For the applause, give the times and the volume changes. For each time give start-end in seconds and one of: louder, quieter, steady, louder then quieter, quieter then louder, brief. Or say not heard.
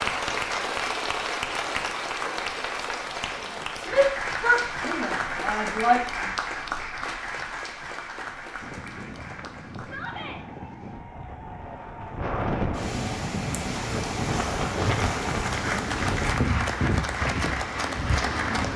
0.0-18.7 quieter then louder.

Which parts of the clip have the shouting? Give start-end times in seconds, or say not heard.
3.9-6.0, 9.8-10.4.